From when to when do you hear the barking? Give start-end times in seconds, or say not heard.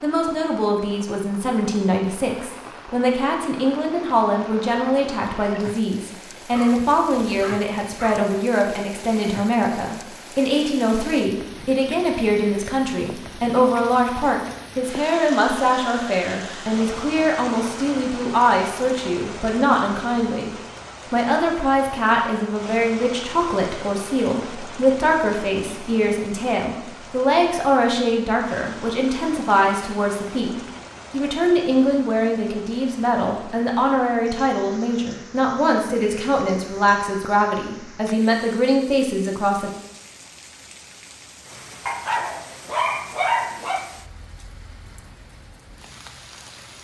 6.5-8.3, 41.9-43.9.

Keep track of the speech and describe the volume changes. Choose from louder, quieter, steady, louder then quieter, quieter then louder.
steady.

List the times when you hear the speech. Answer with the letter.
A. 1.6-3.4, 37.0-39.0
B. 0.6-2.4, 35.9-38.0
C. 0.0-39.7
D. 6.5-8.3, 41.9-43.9
C.